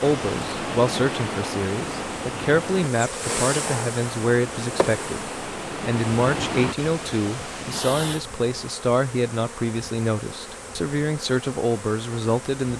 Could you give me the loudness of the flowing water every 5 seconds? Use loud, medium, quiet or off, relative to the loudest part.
loud, loud, off.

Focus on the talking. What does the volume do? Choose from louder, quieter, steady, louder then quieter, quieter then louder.
steady.